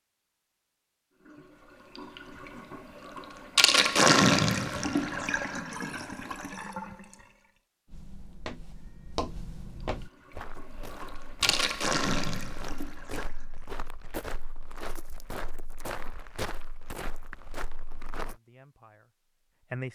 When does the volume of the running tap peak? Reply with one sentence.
The loudest moment of the running tap is at 4 seconds.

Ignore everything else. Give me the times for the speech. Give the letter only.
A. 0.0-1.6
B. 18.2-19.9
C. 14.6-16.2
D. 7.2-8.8
B.